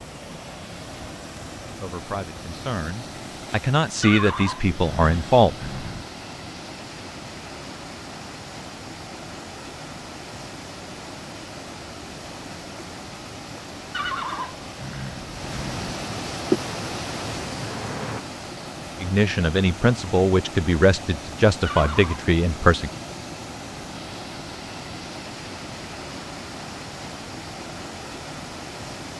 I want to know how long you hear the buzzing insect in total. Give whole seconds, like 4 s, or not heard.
2 s.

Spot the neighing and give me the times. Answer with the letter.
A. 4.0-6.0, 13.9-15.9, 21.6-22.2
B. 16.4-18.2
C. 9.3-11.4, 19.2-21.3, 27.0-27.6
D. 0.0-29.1
A.